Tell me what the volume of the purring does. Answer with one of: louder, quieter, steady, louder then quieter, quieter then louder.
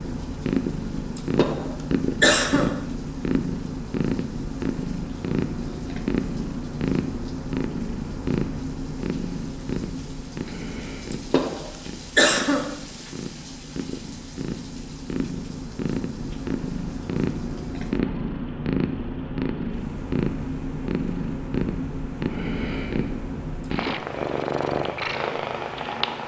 quieter then louder.